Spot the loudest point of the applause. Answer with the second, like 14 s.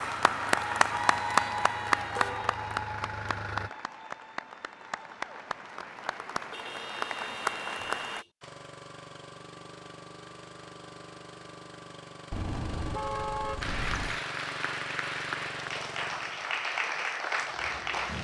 1 s.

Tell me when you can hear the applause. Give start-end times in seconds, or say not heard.
0.0-8.2, 13.6-18.2.